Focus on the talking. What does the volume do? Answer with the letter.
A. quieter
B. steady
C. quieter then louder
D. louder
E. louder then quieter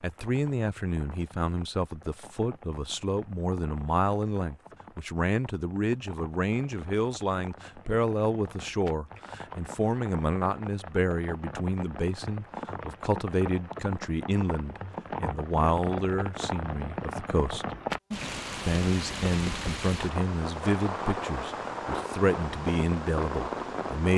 B.